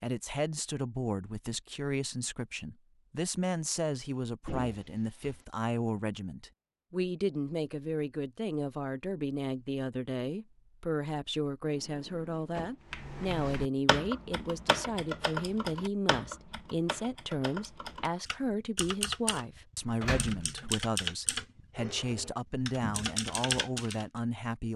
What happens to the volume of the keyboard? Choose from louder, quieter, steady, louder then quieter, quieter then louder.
quieter then louder.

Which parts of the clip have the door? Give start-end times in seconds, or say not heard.
4.5-5.5, 11.6-12.8, 20.0-20.7.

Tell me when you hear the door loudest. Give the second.
20 s.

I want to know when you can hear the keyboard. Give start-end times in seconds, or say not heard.
12.9-19.4, 20.1-24.1.